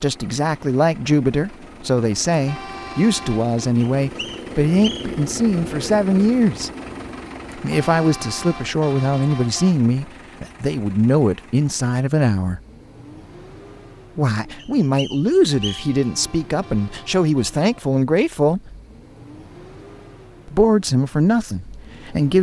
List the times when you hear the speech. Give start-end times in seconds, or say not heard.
0.0-6.7, 7.5-12.6, 14.2-18.7, 20.4-22.3.